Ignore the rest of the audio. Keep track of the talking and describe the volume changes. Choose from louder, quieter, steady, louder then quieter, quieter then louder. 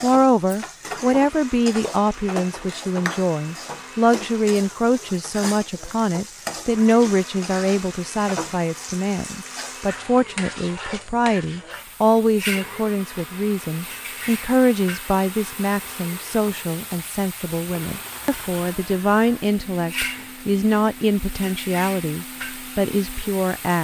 steady.